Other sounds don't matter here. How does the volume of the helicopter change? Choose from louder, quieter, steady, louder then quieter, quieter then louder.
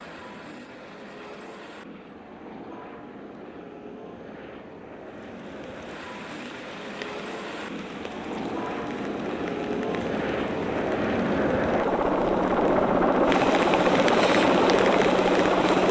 louder.